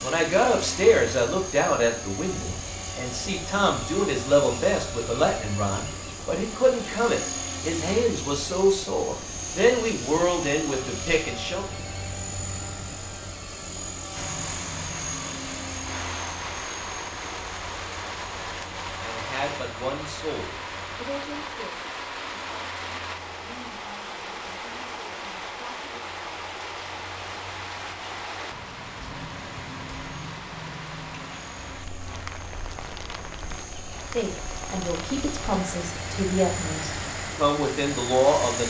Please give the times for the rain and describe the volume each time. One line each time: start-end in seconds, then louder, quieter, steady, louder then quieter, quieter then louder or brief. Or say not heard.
14.1-38.6 steady.